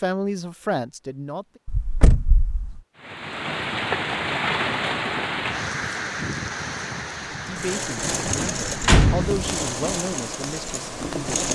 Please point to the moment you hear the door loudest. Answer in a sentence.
The loudest moment of the door is at 9 seconds.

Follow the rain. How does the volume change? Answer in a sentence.
The loudness of the rain goes down.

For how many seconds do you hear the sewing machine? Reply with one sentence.
You can hear the sewing machine for 4 seconds altogether.